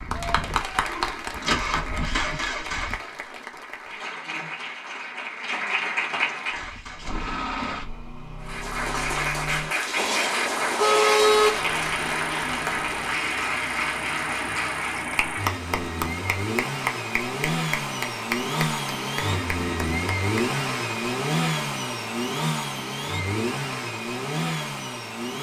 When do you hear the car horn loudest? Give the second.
11 s.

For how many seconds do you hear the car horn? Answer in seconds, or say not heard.
2 s.